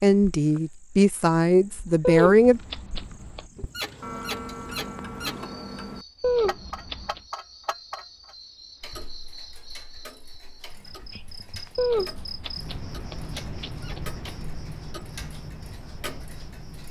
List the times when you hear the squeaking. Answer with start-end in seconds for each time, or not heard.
3.5-5.5, 13.7-14.2.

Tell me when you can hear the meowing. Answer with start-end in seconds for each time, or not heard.
2.0-3.5, 6.2-7.2, 11.8-14.3.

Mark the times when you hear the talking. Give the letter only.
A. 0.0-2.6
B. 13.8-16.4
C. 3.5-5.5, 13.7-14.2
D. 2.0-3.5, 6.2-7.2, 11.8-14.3
A.